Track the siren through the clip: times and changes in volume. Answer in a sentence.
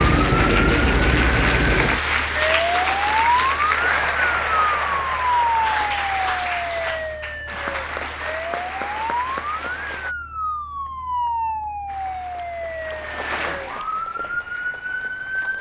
The siren can be heard from 0.0 to 15.5 s, getting quieter.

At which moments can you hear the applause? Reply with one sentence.
You can hear the applause from 0.0 to 10.2 s and from 11.8 to 15.5 s.